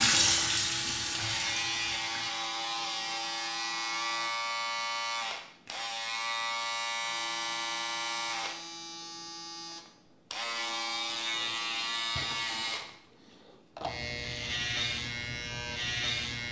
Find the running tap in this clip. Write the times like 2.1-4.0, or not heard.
0.0-2.4.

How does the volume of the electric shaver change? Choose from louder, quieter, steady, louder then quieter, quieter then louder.
steady.